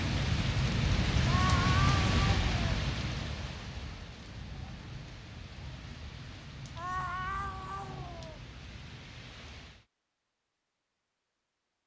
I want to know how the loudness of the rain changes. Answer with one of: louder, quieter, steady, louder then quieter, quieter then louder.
quieter.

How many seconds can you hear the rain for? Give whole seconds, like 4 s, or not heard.
10 s.